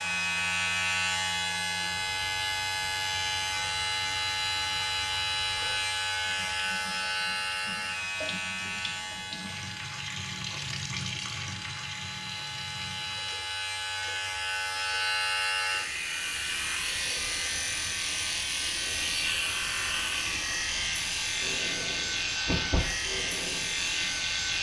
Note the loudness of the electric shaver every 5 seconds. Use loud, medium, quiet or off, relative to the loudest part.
loud, loud, medium, loud, loud.